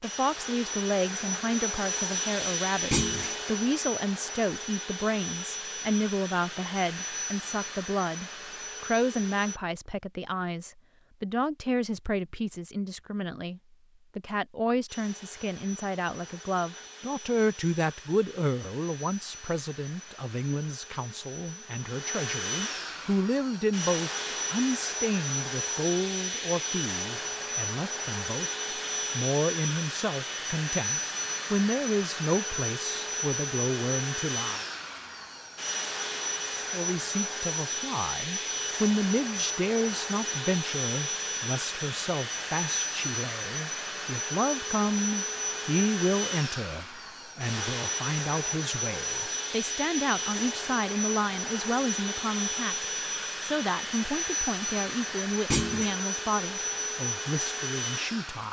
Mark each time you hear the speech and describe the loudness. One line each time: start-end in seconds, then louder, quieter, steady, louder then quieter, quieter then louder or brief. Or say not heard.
0.0-34.6 steady
36.5-58.4 steady.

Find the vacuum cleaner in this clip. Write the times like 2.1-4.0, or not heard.
0.0-9.6, 14.8-58.4.